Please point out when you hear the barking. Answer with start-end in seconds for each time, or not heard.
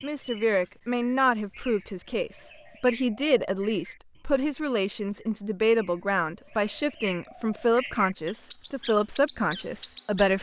not heard.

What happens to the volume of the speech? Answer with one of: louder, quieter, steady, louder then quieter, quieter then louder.
steady.